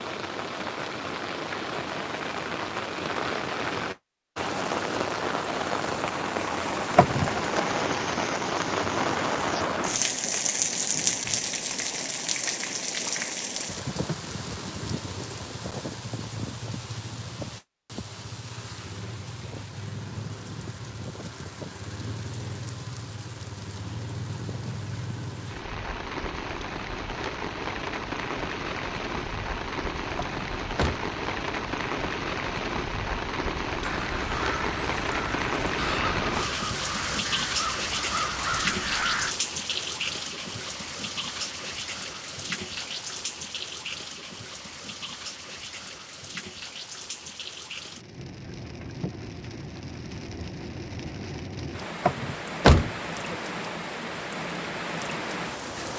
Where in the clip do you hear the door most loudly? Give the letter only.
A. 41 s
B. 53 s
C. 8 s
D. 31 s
B.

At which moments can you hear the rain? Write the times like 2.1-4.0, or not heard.
0.0-55.9.